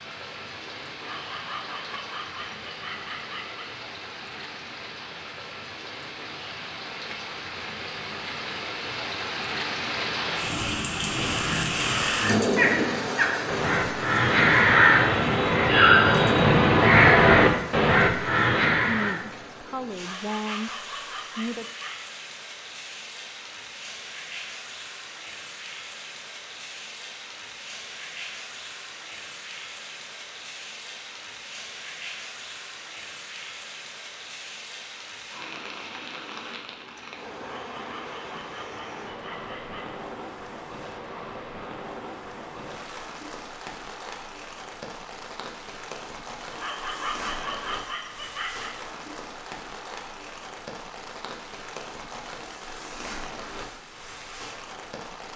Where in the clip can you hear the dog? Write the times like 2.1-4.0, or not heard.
0.9-3.7, 19.9-21.9, 37.5-39.9, 46.5-48.8.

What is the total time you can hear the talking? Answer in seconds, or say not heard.
3 s.